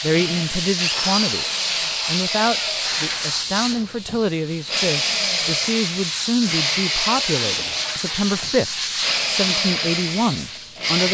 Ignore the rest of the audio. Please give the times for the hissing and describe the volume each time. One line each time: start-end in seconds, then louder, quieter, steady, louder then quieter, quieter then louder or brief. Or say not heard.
0.0-10.9 steady.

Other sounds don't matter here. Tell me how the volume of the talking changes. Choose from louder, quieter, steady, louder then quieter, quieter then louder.
steady.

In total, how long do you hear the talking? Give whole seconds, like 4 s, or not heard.
11 s.